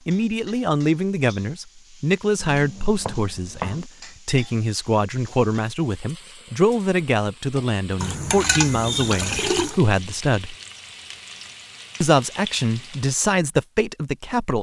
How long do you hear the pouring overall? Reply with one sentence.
The pouring can be heard for 2 seconds in total.